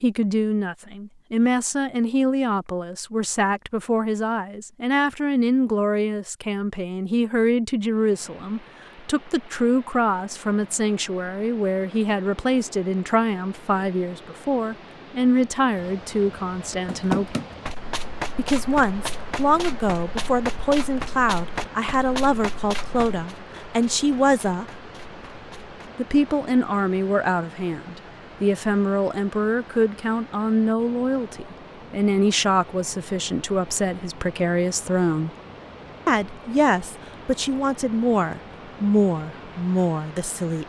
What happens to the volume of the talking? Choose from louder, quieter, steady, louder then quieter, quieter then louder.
steady.